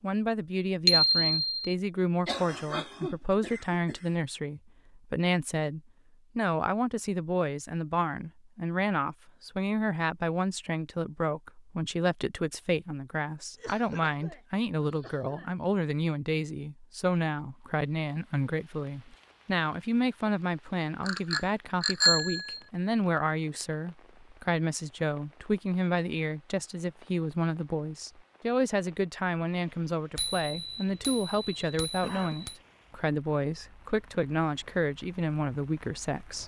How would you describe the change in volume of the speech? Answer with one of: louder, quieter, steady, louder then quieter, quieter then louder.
steady.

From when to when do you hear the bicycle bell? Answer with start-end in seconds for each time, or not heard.
0.8-1.8, 21.1-22.6, 30.1-32.6.